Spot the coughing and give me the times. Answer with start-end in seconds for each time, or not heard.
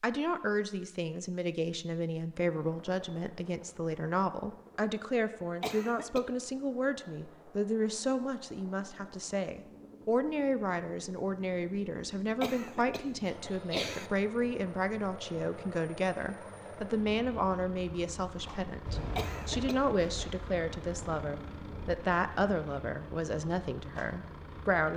5.6-6.2, 12.4-14.1, 19.1-20.2.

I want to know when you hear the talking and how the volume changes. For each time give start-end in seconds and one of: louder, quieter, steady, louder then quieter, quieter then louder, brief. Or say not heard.
0.0-24.9 steady.